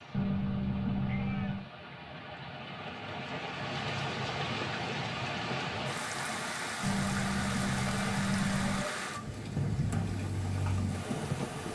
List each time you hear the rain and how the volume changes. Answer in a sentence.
You can hear the rain from 0.0 to 11.6 s, getting louder.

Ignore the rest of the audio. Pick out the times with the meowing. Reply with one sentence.
You can hear the meowing from 0.1 to 1.6 s and from 6.8 to 8.8 s.